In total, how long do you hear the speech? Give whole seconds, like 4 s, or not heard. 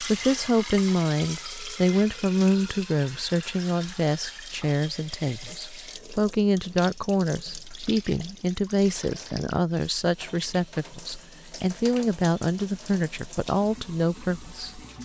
15 s.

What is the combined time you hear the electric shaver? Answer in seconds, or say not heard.
not heard.